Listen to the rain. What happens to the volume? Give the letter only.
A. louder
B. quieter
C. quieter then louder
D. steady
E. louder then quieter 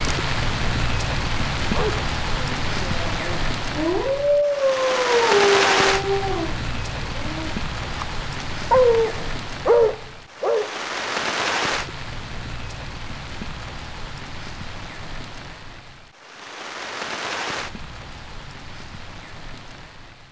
B.